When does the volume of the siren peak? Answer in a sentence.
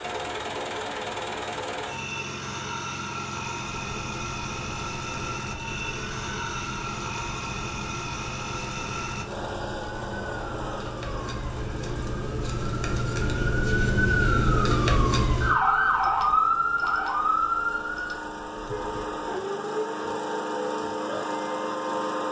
The loudest moment of the siren is at 16 seconds.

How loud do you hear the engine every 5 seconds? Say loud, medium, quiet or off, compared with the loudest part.
loud, loud, medium, medium, loud.